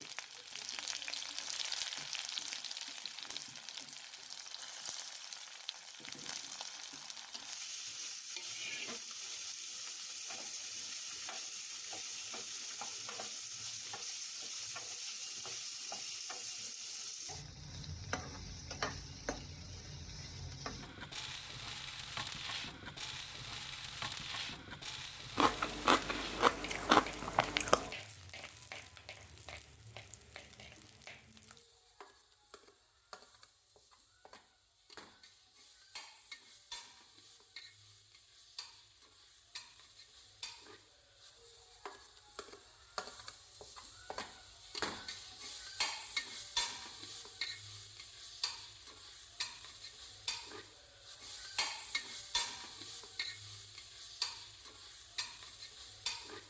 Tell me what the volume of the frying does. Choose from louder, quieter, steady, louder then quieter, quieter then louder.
quieter then louder.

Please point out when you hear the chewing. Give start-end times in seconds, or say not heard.
25.4-27.9.